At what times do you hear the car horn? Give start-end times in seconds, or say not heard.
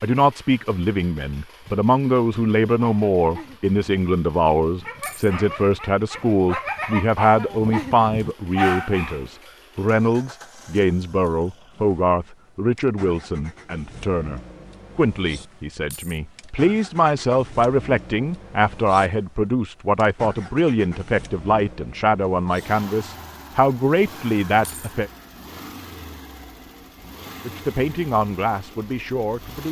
not heard.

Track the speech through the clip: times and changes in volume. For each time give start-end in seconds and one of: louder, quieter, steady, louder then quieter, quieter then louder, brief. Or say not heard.
0.0-25.1 steady
27.4-29.6 brief.